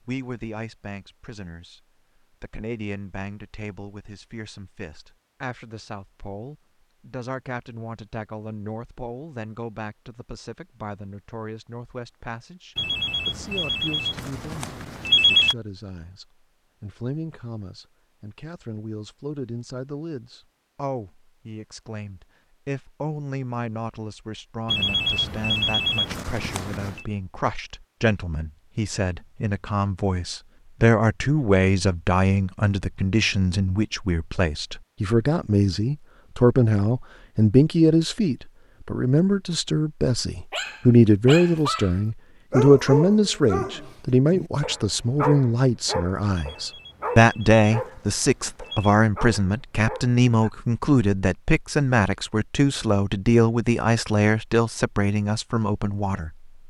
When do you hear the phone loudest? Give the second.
15 s.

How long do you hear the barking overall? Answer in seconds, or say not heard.
10 s.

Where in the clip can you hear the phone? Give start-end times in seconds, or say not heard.
12.8-15.6, 24.6-27.1, 46.4-49.0.